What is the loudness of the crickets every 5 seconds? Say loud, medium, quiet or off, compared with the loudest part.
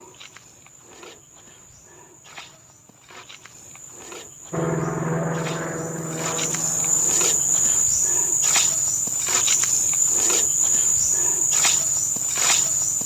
quiet, loud, loud.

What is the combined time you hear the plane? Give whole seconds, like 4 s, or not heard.
3 s.